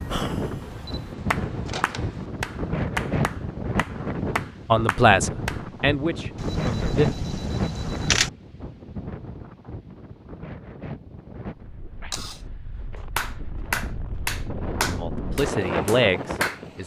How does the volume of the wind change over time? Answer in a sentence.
The loudness of the wind goes down, then up.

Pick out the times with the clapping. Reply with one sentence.
You can hear the clapping from 0.0 to 5.6 s and from 13.2 to 16.6 s.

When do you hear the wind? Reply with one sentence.
You can hear the wind from 0.0 to 16.8 s.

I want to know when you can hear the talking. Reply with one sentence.
The talking can be heard from 4.7 to 7.0 s and from 14.8 to 16.8 s.